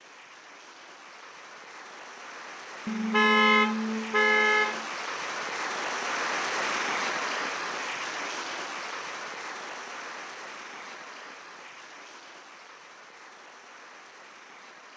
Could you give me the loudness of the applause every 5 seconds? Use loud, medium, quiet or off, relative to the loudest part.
medium, loud, quiet.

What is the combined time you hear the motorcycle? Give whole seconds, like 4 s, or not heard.
not heard.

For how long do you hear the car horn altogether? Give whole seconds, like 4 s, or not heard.
2 s.